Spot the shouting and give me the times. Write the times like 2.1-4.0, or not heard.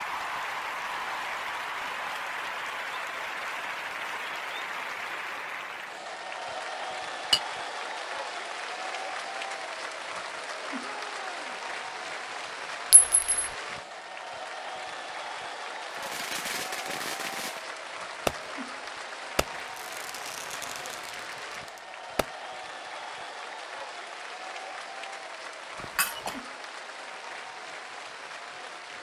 10.8-11.7.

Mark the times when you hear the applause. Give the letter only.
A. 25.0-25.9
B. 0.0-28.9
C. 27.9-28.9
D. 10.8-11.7
B.